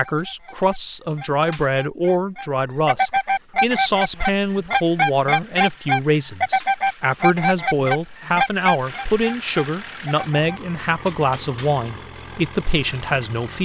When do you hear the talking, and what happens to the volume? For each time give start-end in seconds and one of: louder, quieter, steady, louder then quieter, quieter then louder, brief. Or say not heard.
0.0-13.6 steady.